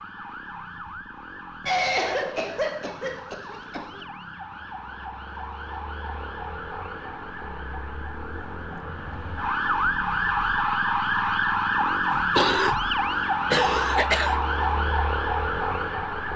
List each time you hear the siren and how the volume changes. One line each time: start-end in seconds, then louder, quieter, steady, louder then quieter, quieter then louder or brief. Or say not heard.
0.0-16.3 louder.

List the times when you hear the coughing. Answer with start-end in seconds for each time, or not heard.
1.6-4.0, 12.1-14.4.